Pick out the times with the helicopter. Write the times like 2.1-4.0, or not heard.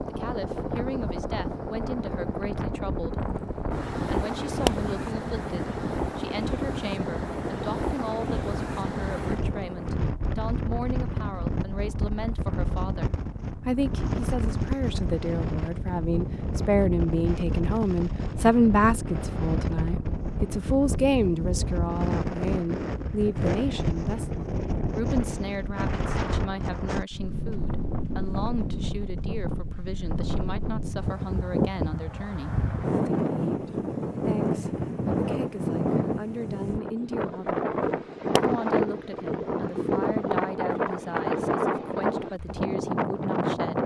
0.0-10.1.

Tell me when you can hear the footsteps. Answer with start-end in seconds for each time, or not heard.
not heard.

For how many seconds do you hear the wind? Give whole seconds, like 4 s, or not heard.
44 s.